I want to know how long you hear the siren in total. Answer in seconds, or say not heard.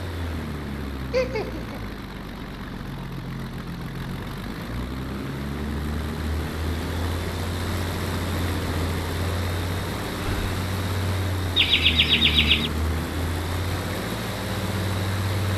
not heard.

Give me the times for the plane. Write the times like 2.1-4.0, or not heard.
0.0-15.5.